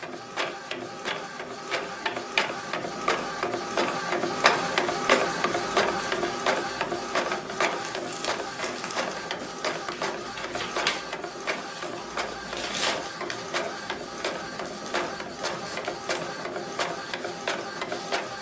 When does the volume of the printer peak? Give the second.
5 s.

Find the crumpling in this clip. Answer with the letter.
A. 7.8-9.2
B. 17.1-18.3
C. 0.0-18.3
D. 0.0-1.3
A.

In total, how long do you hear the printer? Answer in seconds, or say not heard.
18 s.